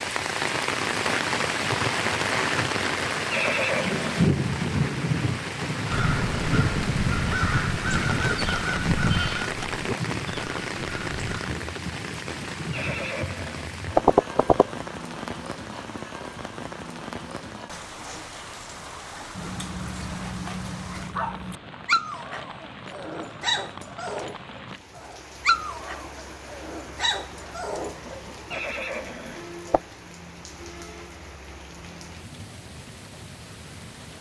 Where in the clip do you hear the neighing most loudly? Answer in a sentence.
The loudest moment of the neighing is at 14 seconds.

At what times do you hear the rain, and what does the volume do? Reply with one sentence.
You can hear the rain from 0.0 to 34.1 s, getting quieter.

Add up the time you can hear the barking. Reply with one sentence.
You can hear the barking for 9 seconds altogether.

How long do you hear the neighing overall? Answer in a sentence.
You can hear the neighing for 4 seconds altogether.